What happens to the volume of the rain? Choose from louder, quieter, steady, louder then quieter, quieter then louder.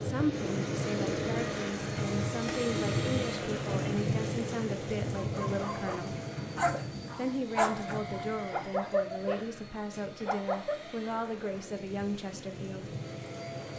quieter then louder.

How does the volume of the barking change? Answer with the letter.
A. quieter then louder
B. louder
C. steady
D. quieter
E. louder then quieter
E.